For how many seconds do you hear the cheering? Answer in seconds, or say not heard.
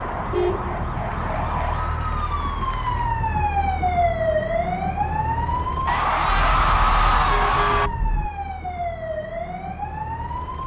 4 s.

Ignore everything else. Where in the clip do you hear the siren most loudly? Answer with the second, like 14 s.
4 s.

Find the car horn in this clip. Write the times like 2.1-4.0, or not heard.
0.1-1.7, 6.5-8.3.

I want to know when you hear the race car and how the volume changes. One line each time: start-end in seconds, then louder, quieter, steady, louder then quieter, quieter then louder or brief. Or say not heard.
not heard.